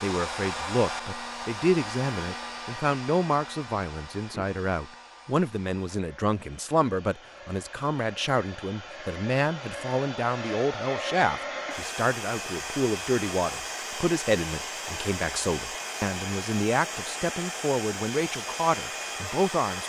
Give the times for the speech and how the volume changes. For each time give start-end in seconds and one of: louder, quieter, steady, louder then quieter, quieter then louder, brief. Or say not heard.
0.0-19.8 steady.